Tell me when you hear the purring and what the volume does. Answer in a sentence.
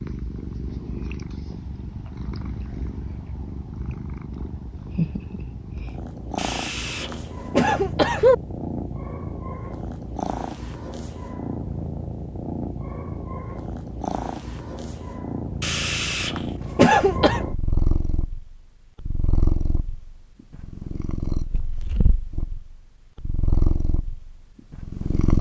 The purring can be heard from 0.0 to 25.3 s, at a steady volume.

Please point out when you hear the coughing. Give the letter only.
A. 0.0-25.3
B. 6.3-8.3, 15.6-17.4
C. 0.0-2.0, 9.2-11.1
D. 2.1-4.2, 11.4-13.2
B.